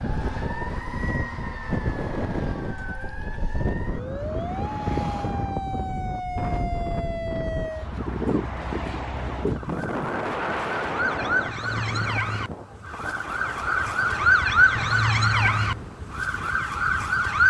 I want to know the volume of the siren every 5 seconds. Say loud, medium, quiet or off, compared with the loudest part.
quiet, medium, loud, loud.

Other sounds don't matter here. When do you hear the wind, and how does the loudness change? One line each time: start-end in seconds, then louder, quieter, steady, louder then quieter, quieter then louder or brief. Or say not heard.
0.0-17.2 quieter.